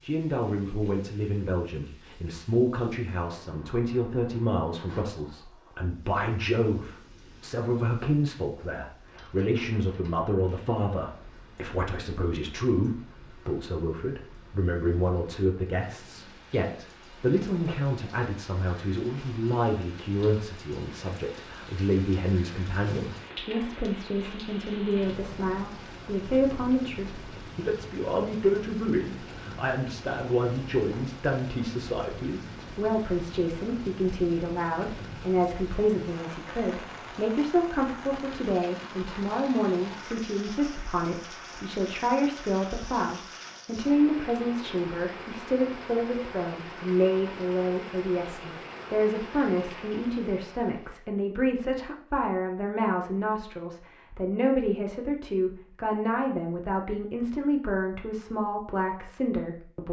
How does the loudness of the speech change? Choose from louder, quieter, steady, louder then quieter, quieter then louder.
steady.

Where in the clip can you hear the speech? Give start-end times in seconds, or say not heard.
0.0-59.8.